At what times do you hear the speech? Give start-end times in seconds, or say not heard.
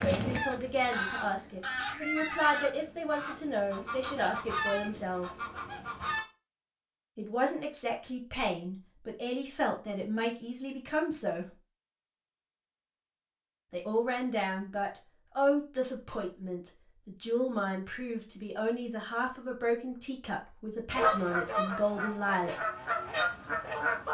0.0-5.3, 7.2-11.6, 13.7-22.6.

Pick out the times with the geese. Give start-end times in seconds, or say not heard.
0.0-6.2, 20.9-24.0.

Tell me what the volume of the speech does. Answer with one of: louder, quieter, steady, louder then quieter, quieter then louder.
steady.